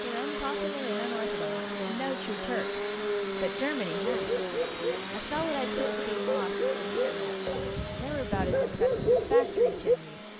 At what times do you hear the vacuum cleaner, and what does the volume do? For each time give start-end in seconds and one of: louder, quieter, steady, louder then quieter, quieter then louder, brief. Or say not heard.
0.0-10.3 quieter.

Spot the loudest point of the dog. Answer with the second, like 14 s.
9 s.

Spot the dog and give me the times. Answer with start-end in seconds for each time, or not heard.
4.0-9.9.